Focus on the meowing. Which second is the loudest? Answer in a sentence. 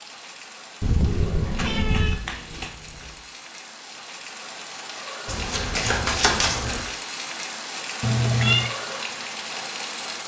The loudest moment of the meowing is at 8 seconds.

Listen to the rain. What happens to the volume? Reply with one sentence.
The volume of the rain goes up.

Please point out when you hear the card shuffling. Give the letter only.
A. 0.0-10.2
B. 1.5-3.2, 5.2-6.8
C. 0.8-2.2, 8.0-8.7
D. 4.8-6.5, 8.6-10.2
B.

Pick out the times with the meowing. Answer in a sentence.
The meowing can be heard from 0.8 to 2.2 s and from 8.0 to 8.7 s.